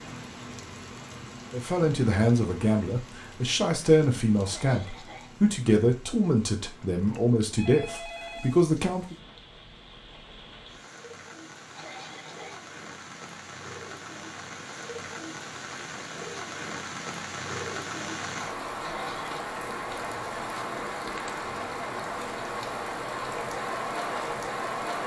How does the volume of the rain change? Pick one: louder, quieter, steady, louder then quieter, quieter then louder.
quieter then louder.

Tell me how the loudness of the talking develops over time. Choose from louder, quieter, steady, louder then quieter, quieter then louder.
steady.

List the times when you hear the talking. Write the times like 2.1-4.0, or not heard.
1.5-9.2.